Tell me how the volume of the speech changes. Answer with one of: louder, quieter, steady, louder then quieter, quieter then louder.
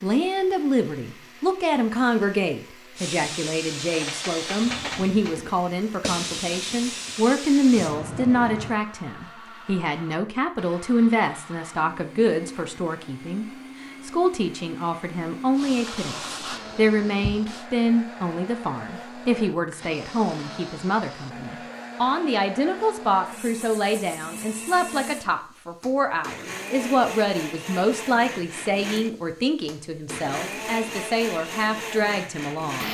steady.